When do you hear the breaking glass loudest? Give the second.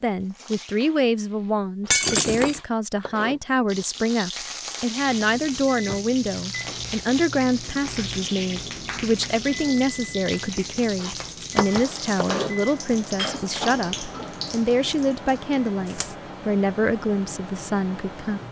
2 s.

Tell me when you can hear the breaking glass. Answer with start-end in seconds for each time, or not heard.
1.9-2.6, 13.2-13.8.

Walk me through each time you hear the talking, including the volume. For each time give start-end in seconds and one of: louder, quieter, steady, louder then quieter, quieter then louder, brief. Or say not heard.
0.0-18.4 steady.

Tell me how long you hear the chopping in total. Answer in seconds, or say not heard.
4 s.